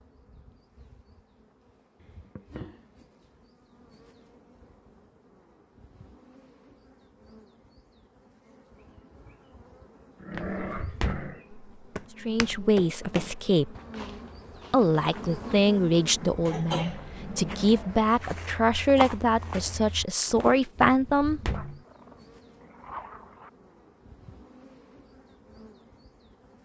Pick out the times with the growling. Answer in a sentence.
The growling can be heard from 10.2 to 11.4 s and from 21.5 to 23.5 s.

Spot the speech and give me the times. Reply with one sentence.
You can hear the speech from 12.2 to 13.8 s and from 14.7 to 21.4 s.